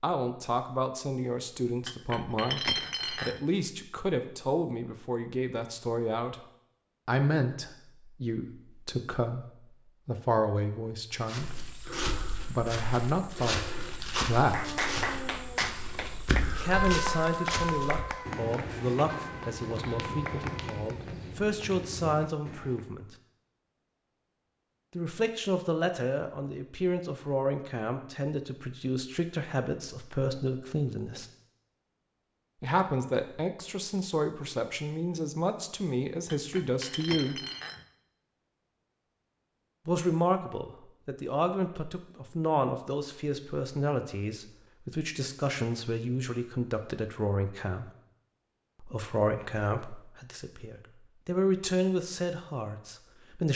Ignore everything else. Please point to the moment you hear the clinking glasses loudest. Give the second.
3 s.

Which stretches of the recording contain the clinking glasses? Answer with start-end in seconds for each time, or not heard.
1.8-3.4, 36.2-37.9.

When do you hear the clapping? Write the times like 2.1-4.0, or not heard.
14.4-21.0.